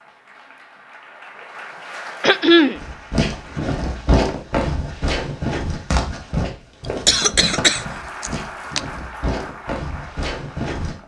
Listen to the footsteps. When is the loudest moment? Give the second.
4 s.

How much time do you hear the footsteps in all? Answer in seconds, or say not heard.
8 s.